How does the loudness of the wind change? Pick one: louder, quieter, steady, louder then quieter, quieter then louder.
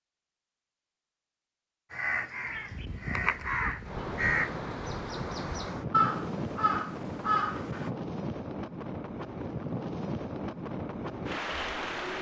steady.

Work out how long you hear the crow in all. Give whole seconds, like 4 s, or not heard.
6 s.